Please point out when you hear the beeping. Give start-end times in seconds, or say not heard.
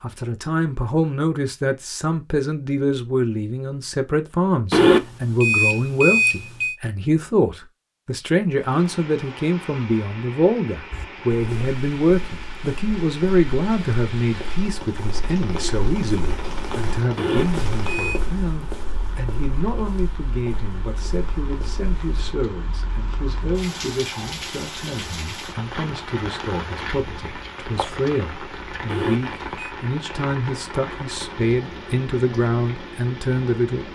4.7-6.8, 17.1-18.2, 28.9-29.8.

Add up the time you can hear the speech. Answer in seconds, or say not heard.
34 s.